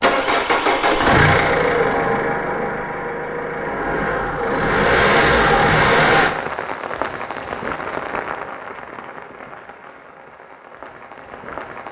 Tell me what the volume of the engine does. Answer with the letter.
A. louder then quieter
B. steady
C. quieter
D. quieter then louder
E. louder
D.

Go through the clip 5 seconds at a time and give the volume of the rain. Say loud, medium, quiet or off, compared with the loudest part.
off, loud, medium.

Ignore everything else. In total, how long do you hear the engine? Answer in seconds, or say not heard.
6 s.